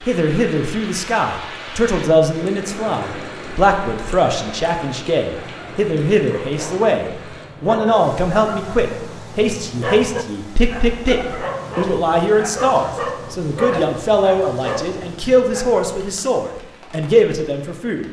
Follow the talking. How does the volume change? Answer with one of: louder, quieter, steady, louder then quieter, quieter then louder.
steady.